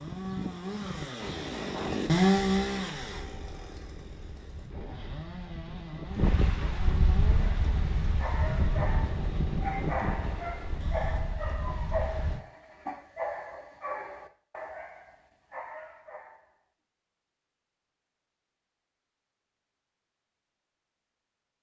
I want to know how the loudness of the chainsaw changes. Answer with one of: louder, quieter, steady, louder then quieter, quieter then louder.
quieter.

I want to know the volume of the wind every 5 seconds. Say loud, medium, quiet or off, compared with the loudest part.
medium, loud, medium, off, off.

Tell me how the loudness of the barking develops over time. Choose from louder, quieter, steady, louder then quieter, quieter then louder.
quieter.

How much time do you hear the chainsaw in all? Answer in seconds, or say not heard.
11 s.